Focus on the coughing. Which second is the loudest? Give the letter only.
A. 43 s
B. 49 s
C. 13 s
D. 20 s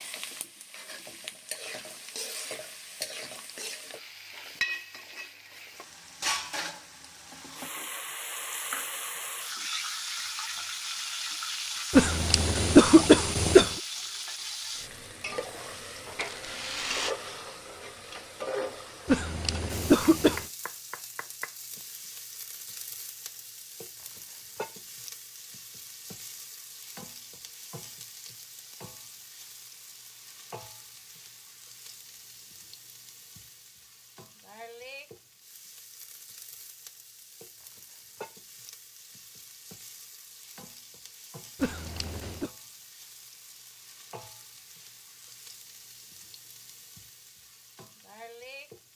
C.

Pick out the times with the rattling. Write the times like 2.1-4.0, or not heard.
16.2-17.1.